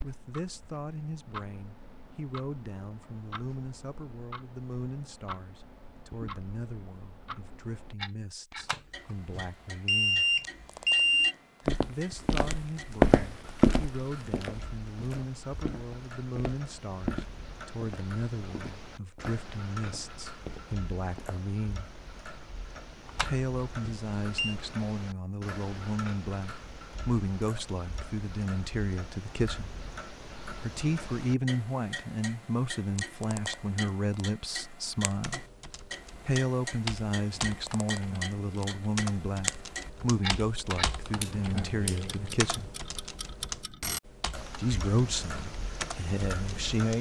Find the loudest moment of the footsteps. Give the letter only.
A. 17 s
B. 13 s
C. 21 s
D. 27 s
B.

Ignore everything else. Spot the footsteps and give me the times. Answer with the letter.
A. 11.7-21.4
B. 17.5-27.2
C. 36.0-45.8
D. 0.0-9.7
A.